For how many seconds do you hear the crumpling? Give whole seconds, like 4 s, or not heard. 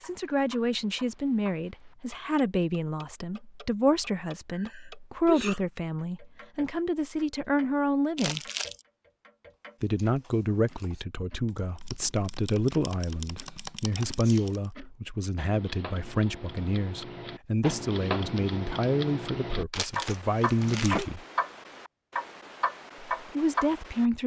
2 s.